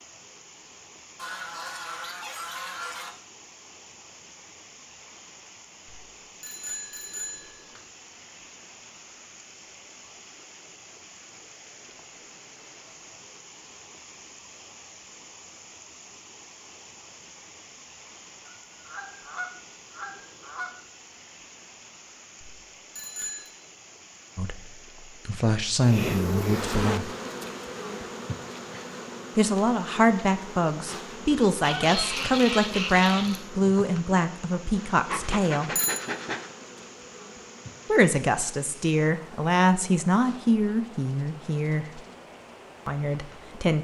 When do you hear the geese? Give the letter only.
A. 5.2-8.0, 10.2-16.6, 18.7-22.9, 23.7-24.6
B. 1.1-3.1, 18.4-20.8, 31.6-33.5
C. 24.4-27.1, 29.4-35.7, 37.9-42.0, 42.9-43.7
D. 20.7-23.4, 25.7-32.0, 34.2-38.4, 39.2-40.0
B.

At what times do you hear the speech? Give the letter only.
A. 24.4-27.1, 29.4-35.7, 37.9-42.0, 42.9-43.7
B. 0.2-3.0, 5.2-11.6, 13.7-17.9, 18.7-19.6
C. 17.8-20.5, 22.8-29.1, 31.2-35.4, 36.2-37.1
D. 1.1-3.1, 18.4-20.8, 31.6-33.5
A.